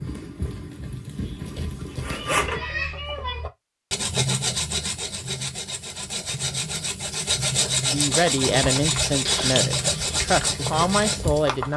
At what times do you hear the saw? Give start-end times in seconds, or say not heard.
2.0-11.6.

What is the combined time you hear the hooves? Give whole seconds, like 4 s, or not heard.
6 s.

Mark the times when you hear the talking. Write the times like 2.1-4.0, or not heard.
7.8-11.7.